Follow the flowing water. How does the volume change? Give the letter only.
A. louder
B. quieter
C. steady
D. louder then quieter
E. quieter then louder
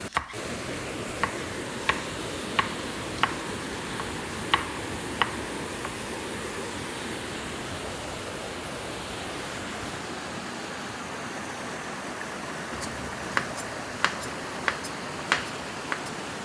C.